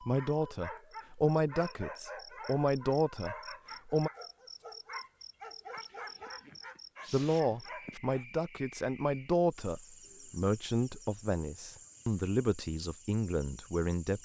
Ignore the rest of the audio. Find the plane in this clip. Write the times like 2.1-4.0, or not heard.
not heard.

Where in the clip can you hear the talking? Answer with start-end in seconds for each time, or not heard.
0.0-4.1, 7.1-14.2.